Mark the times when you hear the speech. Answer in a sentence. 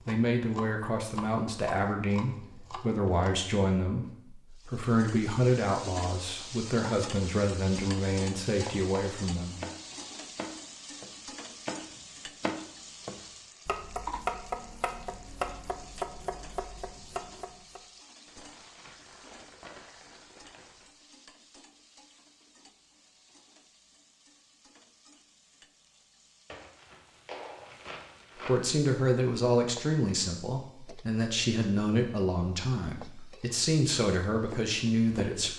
The speech can be heard from 0.0 to 9.6 s and from 28.4 to 35.5 s.